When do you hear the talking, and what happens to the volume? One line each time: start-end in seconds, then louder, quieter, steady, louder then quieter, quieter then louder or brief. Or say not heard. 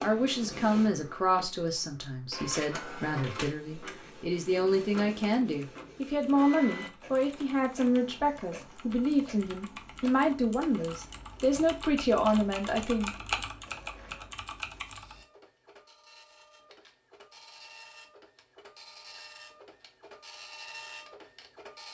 0.0-13.2 steady.